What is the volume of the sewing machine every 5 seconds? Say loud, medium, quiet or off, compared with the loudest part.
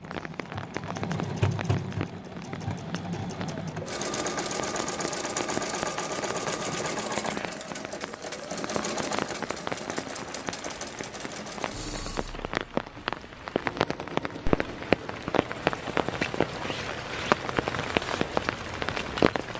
loud, loud, medium, medium.